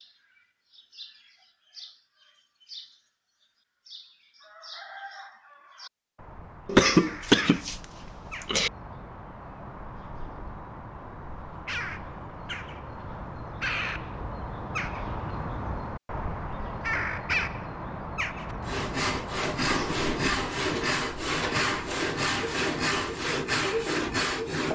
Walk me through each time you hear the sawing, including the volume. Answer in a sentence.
You can hear the sawing from 18.4 to 24.6 s, at a steady volume.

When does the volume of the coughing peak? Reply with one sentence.
The volume of the coughing peaks at 7 seconds.